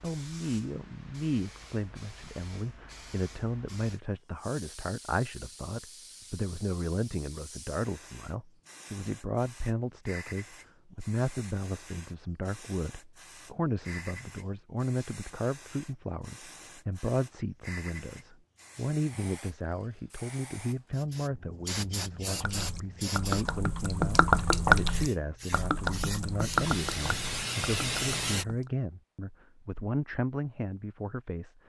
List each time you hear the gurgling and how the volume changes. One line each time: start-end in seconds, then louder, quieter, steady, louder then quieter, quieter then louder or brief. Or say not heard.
22.3-28.7 louder then quieter.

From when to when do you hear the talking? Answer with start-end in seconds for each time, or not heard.
0.0-31.6.